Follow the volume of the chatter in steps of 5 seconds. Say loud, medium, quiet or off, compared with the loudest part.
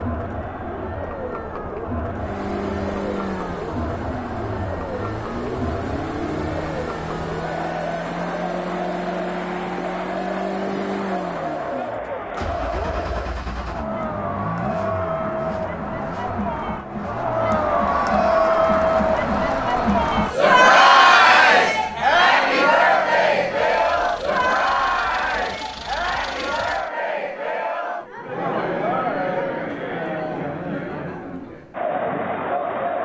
quiet, quiet, quiet, medium, loud, medium, medium.